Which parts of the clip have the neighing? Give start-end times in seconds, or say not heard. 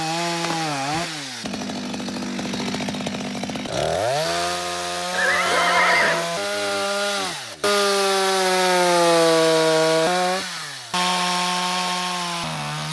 5.1-6.2.